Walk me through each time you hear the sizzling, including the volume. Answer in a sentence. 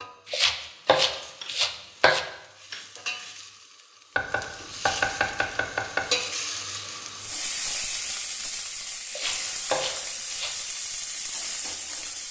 The sizzling can be heard from 0.0 to 12.2 s, getting louder.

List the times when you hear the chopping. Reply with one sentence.
The chopping can be heard from 0.3 to 2.2 s, from 4.2 to 6.1 s and from 9.1 to 10.6 s.